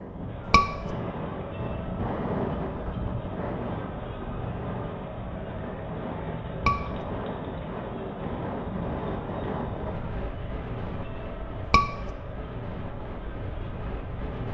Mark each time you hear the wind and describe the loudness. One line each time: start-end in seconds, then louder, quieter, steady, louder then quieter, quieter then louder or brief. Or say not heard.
0.0-14.4 quieter.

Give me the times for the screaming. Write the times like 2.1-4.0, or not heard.
0.5-0.9, 6.5-7.0, 11.7-12.2.